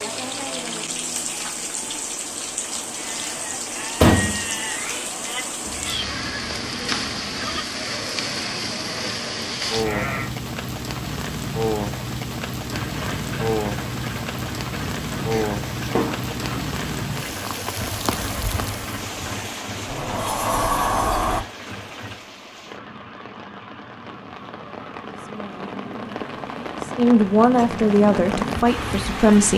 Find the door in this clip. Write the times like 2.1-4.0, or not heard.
4.0-5.0, 15.3-16.3, 19.9-21.4.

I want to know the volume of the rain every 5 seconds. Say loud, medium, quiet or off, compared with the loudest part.
loud, loud, loud, loud, medium, loud.